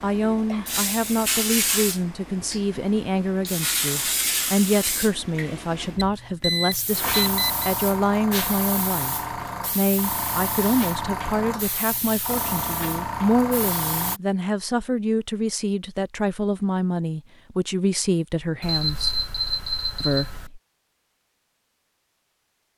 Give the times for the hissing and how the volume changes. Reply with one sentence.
The hissing can be heard from 0.0 to 14.2 s, at a steady volume.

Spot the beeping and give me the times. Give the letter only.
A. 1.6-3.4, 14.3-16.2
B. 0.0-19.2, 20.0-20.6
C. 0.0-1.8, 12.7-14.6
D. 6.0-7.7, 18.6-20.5
D.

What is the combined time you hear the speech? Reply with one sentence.
The speech can be heard for 20 seconds in total.